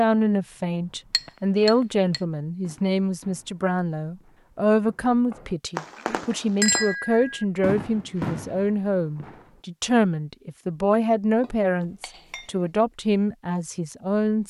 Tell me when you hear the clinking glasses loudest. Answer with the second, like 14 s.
7 s.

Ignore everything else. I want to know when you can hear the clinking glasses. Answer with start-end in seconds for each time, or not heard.
1.1-2.2, 6.6-7.5, 11.4-12.5.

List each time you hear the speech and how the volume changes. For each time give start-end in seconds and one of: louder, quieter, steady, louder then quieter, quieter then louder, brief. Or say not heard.
0.0-14.4 steady.